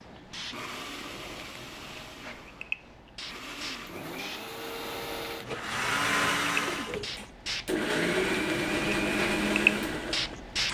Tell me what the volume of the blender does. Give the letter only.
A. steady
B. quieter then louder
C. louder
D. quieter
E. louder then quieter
C.